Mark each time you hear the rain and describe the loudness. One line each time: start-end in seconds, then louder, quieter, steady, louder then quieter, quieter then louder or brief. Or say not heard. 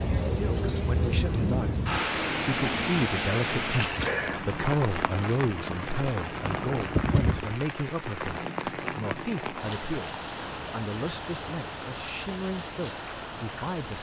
0.0-13.9 quieter.